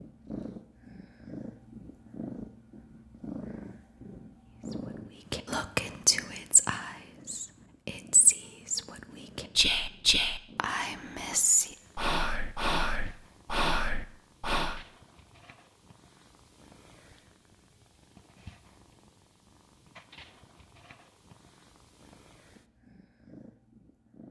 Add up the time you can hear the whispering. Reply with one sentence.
The whispering can be heard for 10 seconds in total.